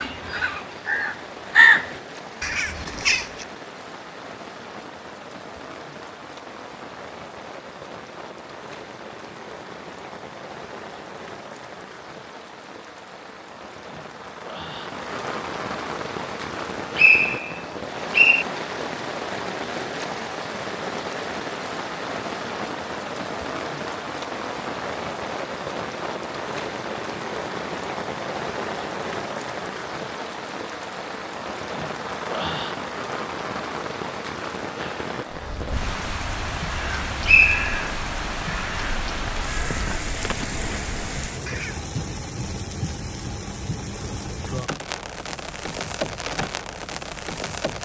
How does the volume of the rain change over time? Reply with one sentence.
The loudness of the rain goes up.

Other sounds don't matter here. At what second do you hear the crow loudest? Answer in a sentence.
The volume of the crow peaks at 2 seconds.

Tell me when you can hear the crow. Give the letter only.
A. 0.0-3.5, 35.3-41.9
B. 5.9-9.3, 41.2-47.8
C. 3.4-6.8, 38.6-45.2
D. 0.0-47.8
A.